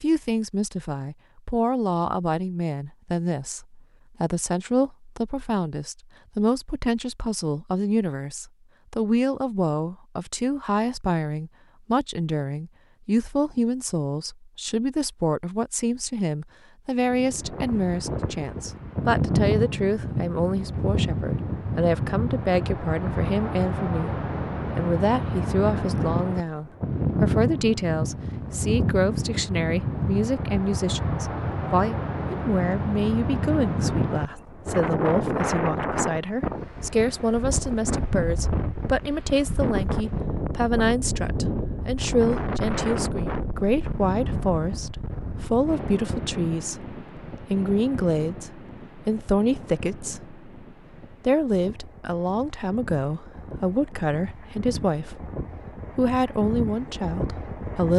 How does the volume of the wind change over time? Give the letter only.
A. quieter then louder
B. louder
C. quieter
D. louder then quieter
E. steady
C.